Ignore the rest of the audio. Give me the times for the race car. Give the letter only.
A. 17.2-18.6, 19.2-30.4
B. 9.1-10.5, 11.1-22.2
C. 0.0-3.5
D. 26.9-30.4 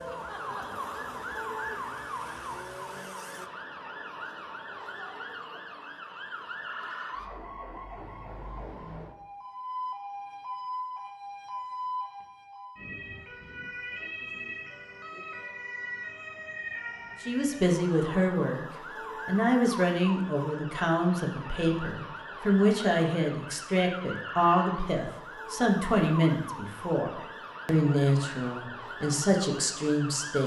C.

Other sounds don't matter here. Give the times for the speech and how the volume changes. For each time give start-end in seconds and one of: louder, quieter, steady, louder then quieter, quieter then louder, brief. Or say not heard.
17.2-18.6 brief
19.2-30.4 steady.